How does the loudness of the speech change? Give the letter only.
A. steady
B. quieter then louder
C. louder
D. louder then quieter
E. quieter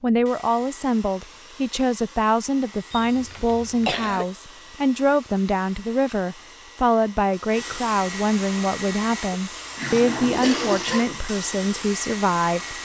A.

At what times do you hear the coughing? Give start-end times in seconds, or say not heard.
2.9-4.2, 10.4-11.2.